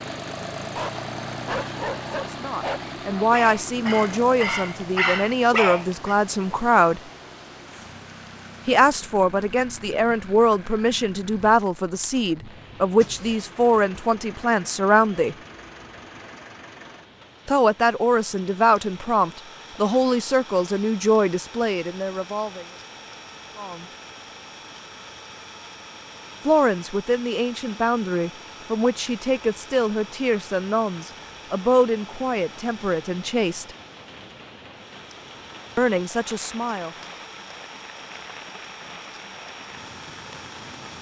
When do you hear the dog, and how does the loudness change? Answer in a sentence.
You can hear the dog from 0.8 to 6.2 s, getting louder.